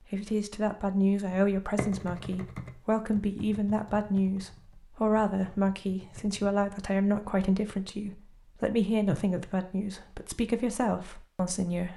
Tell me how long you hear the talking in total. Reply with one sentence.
The talking can be heard for 12 seconds in total.